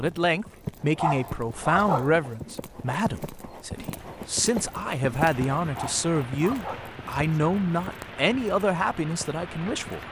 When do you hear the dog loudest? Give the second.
2 s.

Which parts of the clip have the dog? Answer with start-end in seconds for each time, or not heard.
0.9-2.2, 5.7-7.0.